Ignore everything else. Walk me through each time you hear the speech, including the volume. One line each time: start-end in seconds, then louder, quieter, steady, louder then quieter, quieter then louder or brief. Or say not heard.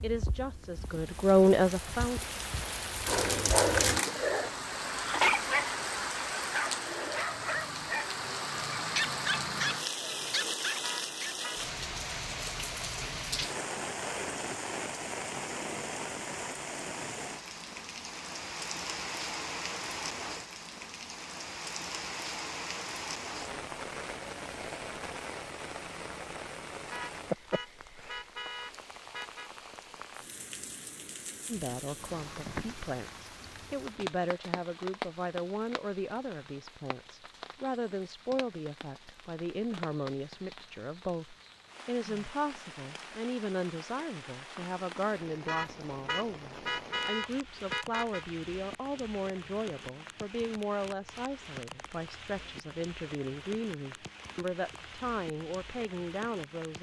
0.0-2.2 brief
31.4-56.7 steady.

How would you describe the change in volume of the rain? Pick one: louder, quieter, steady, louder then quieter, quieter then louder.
quieter.